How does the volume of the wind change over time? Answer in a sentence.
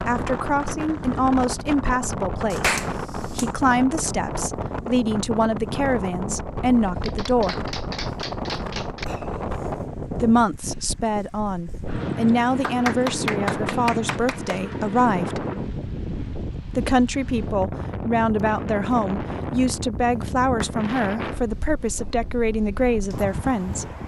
The volume of the wind stays about the same.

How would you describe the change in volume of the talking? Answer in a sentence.
The volume of the talking stays about the same.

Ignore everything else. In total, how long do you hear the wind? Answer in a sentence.
You can hear the wind for 24 seconds altogether.